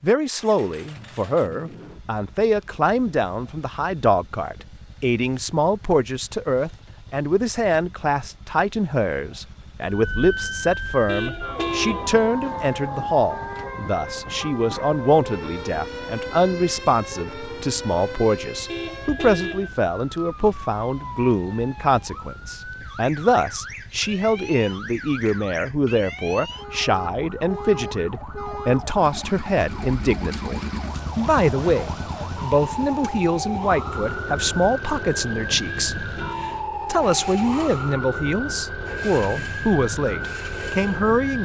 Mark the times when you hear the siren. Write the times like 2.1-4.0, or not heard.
9.8-41.4.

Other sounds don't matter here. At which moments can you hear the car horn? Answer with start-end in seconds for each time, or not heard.
11.1-12.1, 18.6-19.7, 35.6-36.6.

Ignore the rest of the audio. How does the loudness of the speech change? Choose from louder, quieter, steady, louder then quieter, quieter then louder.
steady.